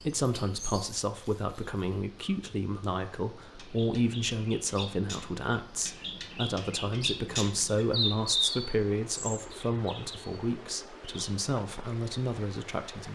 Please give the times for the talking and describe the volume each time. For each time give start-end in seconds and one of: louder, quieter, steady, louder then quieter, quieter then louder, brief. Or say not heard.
0.0-13.1 steady.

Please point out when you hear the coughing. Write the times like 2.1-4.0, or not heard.
not heard.